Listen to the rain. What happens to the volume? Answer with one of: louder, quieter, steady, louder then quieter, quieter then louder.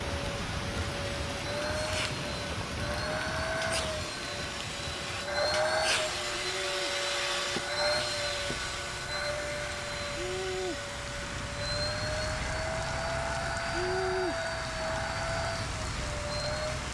quieter then louder.